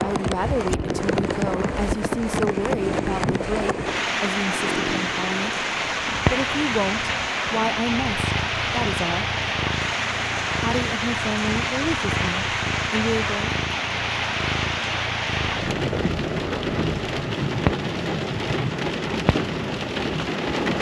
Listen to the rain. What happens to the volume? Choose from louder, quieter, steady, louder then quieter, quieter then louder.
steady.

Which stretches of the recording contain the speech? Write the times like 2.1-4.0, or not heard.
0.0-5.6, 6.3-9.2, 10.6-13.6.